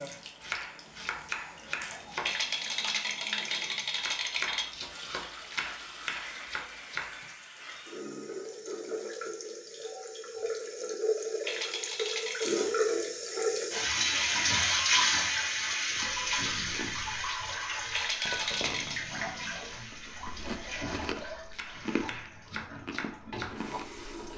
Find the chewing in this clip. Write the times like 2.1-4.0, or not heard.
15.8-24.3.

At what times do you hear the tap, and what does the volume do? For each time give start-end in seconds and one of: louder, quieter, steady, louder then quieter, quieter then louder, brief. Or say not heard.
0.0-24.3 louder then quieter.